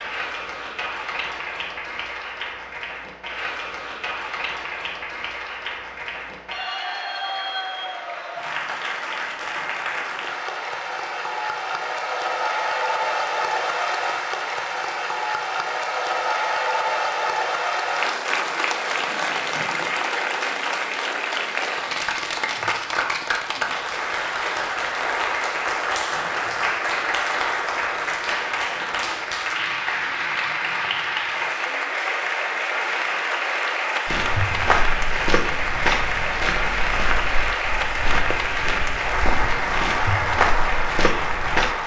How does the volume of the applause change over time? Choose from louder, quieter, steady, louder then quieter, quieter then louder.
louder.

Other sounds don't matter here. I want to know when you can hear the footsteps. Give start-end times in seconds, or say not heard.
34.0-41.8.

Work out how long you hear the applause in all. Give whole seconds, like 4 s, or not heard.
42 s.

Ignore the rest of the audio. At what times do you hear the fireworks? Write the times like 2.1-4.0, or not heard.
not heard.